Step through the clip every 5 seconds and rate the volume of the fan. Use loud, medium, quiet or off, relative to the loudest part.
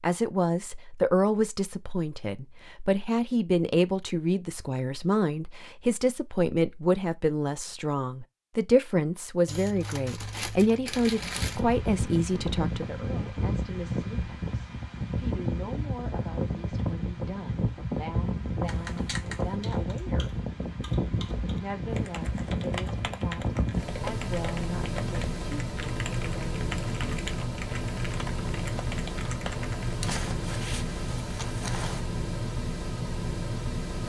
off, off, loud, loud, loud, loud, loud.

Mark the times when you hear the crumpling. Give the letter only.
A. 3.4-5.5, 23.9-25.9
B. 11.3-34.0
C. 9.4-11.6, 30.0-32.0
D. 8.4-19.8
C.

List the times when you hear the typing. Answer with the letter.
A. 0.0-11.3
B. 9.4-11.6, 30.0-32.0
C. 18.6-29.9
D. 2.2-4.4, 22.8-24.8
C.